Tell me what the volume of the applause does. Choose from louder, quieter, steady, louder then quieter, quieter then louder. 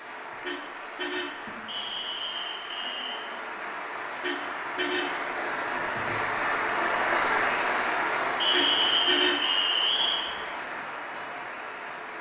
louder then quieter.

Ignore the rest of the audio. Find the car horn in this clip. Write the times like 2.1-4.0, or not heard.
0.4-1.5, 4.2-5.3, 8.5-9.6.